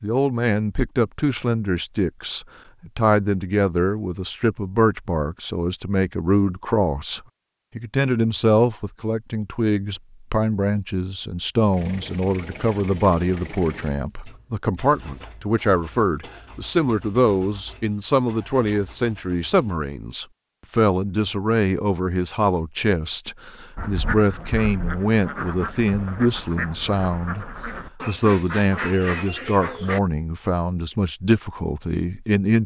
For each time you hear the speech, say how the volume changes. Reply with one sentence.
The speech can be heard from 0.0 to 32.6 s, at a steady volume.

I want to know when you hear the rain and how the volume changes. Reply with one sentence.
You can't hear the rain here.